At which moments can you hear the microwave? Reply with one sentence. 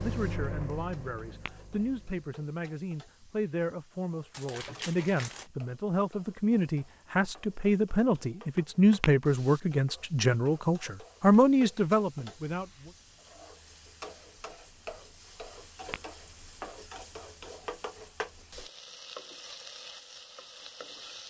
The microwave can be heard from 0.0 to 2.2 s.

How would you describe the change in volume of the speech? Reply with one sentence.
The volume of the speech goes up.